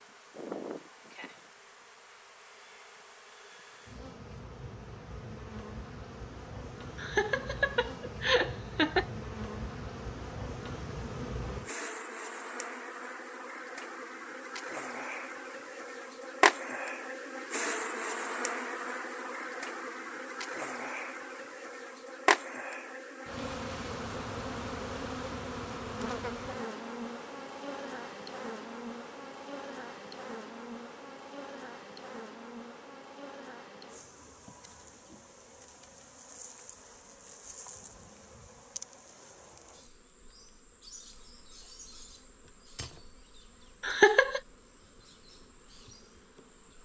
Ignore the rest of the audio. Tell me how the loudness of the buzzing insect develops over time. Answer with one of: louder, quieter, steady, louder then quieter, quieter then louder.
louder then quieter.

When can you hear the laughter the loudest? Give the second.
44 s.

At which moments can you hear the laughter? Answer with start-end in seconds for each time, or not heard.
7.0-9.1, 43.8-44.4.